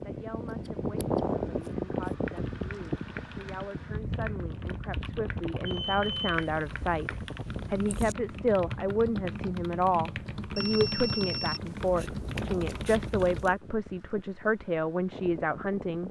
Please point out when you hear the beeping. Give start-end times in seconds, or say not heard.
5.7-6.3, 10.6-11.9.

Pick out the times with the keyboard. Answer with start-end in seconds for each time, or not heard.
1.9-13.4.